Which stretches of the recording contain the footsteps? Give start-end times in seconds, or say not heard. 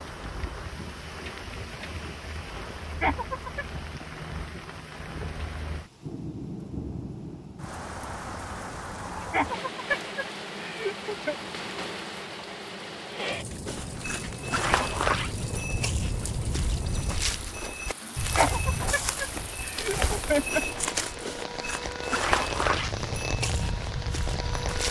13.7-24.8.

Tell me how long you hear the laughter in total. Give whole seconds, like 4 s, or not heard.
5 s.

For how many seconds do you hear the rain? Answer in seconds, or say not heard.
25 s.